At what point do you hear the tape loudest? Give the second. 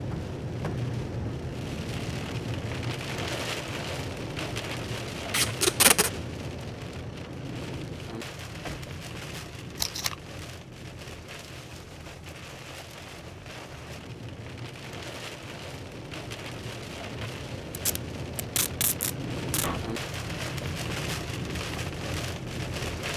6 s.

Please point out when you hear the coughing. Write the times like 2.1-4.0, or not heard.
not heard.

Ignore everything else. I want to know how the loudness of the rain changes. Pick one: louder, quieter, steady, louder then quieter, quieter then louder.
quieter then louder.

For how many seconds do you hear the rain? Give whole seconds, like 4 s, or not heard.
23 s.